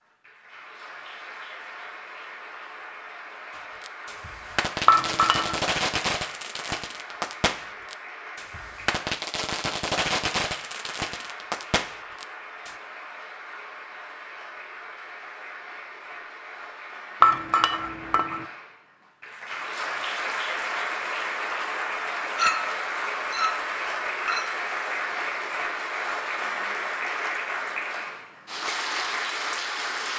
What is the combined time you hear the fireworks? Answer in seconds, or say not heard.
9 s.